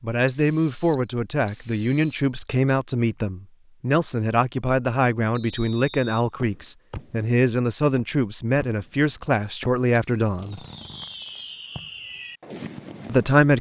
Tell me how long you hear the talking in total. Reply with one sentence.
The talking can be heard for 11 seconds in total.